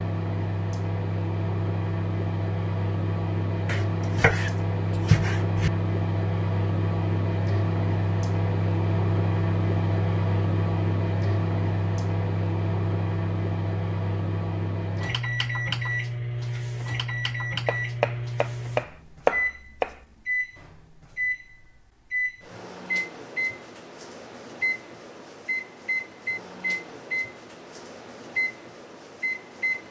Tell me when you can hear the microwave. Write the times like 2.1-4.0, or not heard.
0.0-29.8.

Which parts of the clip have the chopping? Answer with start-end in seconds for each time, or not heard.
3.6-5.7, 17.6-19.9.